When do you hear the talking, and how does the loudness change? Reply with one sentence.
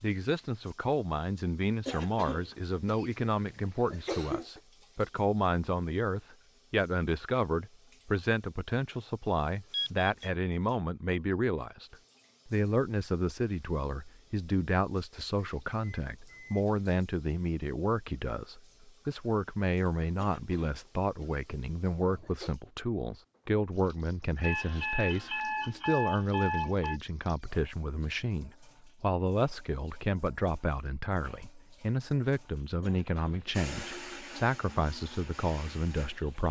The talking can be heard from 0.0 to 36.4 s, at a steady volume.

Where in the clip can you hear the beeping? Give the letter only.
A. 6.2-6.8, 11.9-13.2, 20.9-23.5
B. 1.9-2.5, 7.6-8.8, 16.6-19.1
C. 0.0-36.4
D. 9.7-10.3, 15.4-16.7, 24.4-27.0
D.